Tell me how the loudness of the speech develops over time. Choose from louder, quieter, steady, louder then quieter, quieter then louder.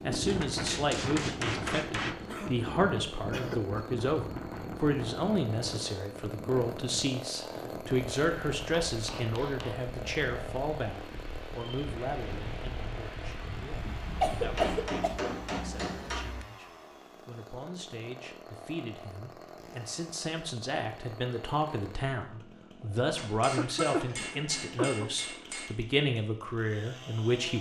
quieter then louder.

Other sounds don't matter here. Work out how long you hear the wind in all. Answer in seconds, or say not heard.
15 s.